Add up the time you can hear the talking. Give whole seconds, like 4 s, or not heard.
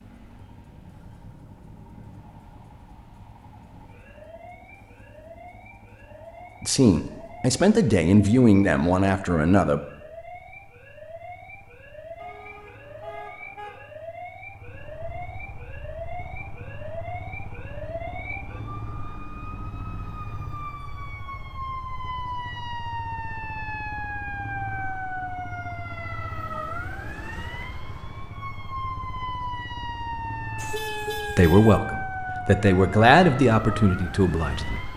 7 s.